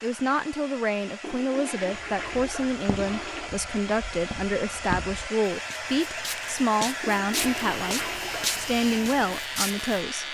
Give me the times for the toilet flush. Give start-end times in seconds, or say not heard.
1.2-3.5, 7.0-8.7.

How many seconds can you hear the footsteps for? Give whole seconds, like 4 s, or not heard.
8 s.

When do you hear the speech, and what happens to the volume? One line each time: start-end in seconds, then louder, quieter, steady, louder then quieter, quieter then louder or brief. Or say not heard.
0.0-10.2 steady.